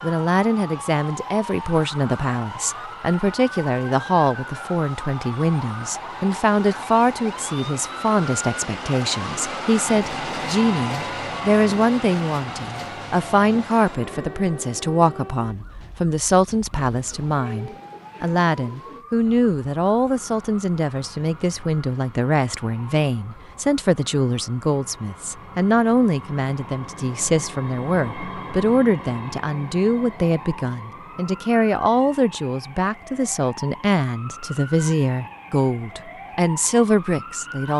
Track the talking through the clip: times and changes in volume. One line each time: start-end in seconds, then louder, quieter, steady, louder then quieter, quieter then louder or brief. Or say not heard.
0.0-37.7 steady.